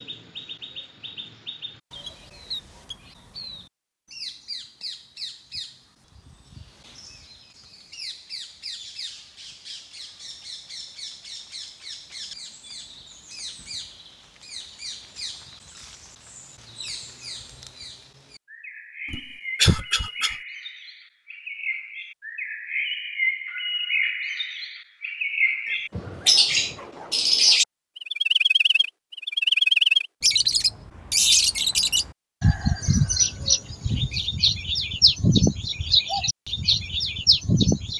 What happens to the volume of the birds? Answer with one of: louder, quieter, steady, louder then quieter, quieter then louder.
louder.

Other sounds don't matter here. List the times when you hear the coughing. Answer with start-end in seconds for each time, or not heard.
19.1-20.4.